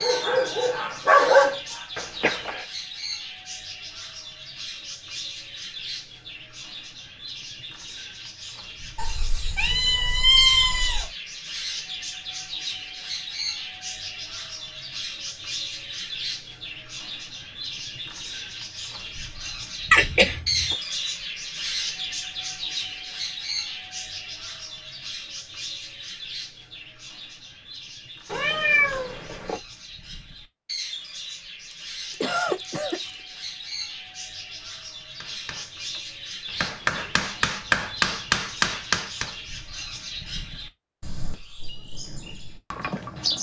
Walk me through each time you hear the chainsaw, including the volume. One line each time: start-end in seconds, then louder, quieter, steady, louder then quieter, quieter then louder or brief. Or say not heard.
not heard.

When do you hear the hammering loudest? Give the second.
38 s.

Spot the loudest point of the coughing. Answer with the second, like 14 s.
20 s.